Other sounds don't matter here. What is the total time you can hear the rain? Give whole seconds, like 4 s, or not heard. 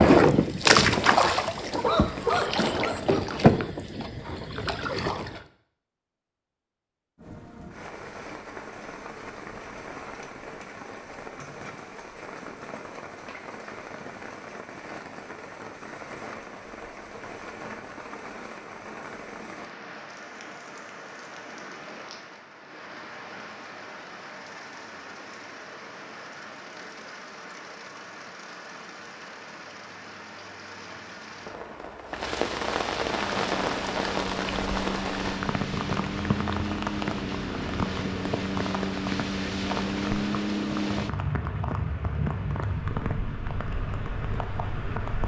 38 s.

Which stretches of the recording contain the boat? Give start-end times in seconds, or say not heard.
0.0-5.4, 33.1-45.2.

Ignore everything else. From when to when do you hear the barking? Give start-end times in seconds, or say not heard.
1.8-3.2.